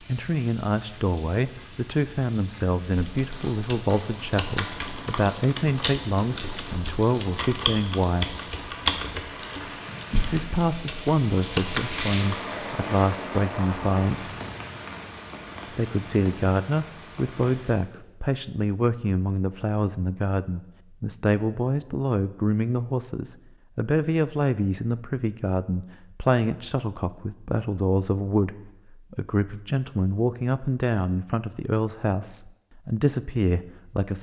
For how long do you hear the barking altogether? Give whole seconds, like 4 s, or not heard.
not heard.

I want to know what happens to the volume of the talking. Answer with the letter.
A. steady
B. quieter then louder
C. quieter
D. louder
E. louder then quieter
A.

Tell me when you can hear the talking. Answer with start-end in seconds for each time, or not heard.
0.1-8.3, 10.2-14.3, 15.7-34.1.